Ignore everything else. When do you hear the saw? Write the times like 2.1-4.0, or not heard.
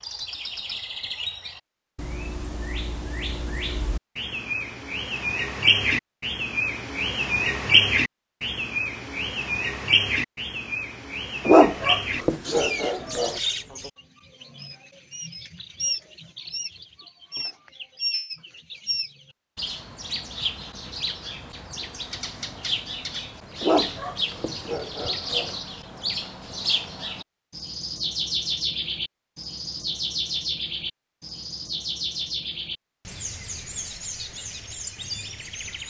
not heard.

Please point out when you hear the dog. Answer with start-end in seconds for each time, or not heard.
11.4-13.4, 23.6-25.6.